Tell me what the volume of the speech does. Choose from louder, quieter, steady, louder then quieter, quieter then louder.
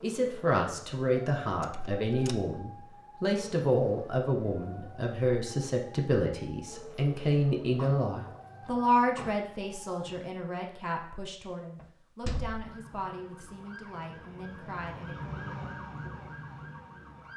quieter.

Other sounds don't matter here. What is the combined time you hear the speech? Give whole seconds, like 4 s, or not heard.
15 s.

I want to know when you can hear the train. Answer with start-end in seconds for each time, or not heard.
not heard.